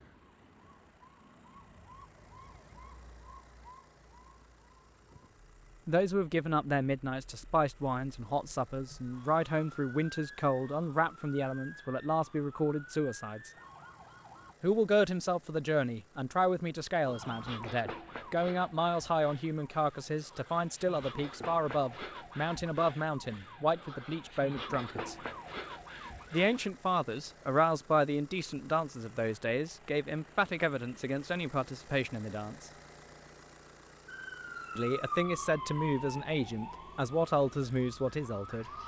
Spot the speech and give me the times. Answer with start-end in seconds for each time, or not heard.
5.8-13.5, 14.6-25.1, 26.3-32.7, 34.8-38.7.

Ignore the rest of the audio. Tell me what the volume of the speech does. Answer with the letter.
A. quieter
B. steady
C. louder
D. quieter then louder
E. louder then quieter
B.